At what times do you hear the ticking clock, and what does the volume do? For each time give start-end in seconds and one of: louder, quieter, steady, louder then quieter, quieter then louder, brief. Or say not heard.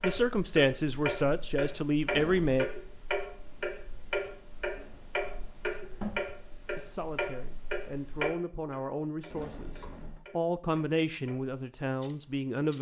0.0-12.7 quieter.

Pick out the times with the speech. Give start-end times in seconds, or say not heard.
0.0-2.6, 6.8-12.7.